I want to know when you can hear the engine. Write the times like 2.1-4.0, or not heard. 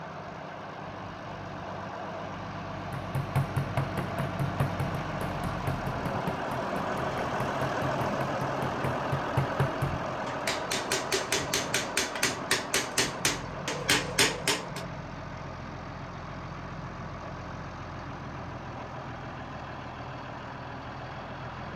0.0-21.7.